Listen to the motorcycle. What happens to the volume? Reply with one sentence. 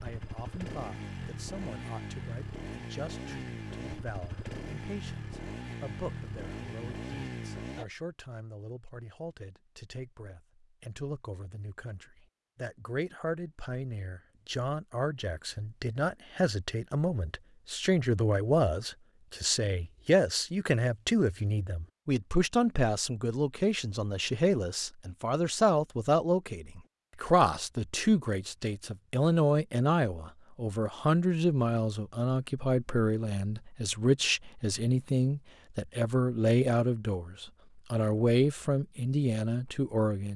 The loudness of the motorcycle stays about the same.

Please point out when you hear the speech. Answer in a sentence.
You can hear the speech from 0.0 to 40.3 s.